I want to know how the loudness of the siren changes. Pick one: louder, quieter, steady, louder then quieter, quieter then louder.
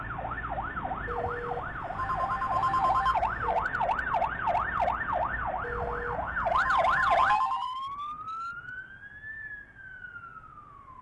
louder then quieter.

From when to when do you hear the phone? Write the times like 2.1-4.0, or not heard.
1.1-3.6, 5.6-7.7.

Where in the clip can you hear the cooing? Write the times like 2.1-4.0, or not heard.
not heard.